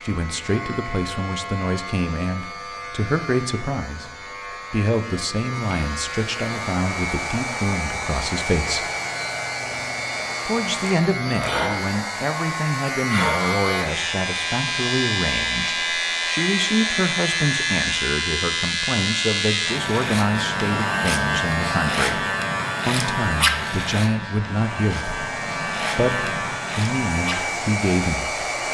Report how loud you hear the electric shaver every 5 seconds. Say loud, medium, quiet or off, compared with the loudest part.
medium, medium, loud, loud, loud, medium.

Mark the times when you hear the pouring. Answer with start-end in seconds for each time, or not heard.
not heard.